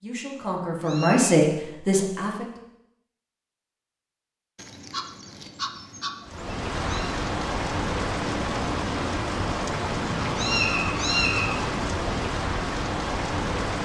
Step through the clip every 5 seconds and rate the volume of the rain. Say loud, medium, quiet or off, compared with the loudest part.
off, loud, loud.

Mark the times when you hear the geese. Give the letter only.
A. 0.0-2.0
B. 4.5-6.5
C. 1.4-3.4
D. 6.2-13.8
B.